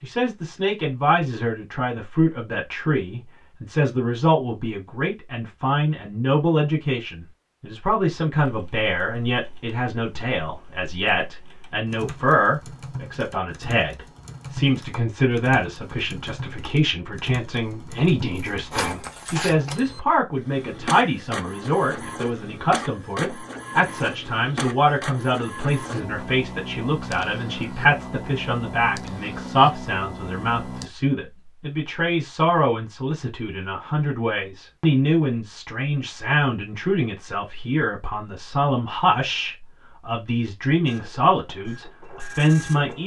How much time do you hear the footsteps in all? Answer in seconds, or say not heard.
not heard.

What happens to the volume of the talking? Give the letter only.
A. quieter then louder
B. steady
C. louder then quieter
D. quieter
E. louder
B.